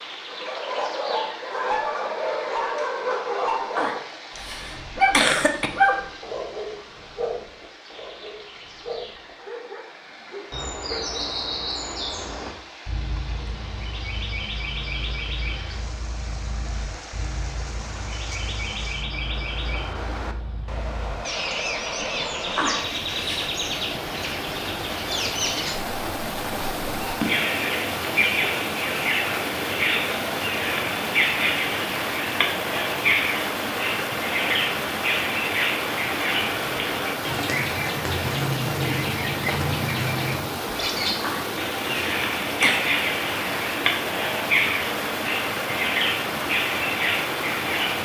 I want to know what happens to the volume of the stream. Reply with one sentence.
The volume of the stream goes up.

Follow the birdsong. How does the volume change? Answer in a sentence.
The loudness of the birdsong goes up.